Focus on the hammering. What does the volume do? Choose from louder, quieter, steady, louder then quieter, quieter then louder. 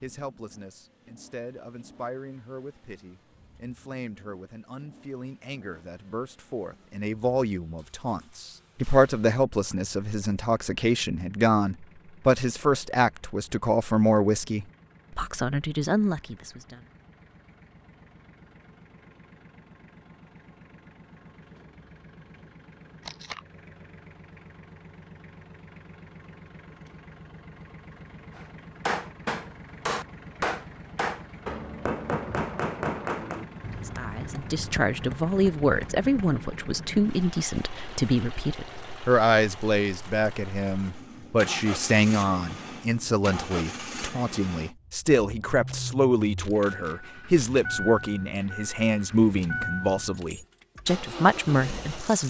quieter.